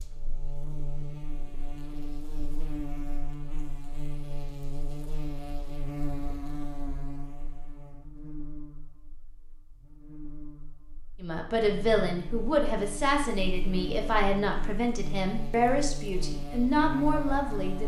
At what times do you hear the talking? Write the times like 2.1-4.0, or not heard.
11.2-17.8.